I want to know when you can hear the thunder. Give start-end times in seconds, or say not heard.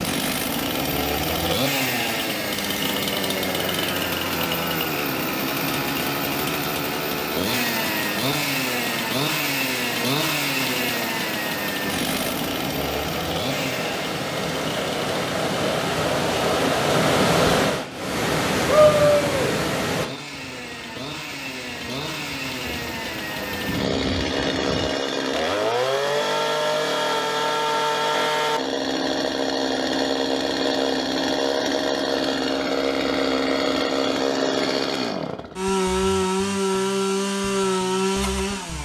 20.3-24.9.